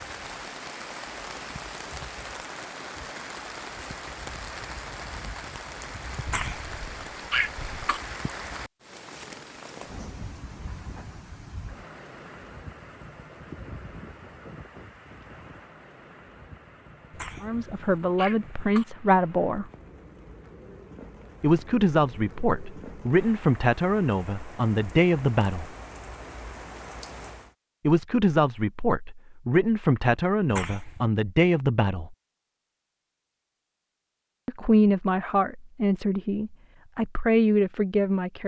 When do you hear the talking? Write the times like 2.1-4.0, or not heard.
17.4-19.6, 21.4-25.7, 27.9-32.1, 34.5-38.4.